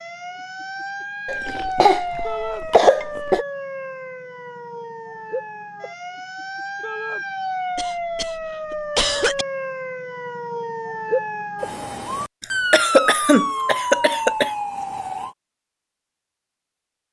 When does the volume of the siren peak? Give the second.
13 s.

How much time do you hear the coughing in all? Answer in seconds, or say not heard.
6 s.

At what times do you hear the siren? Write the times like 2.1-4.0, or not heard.
0.0-15.3.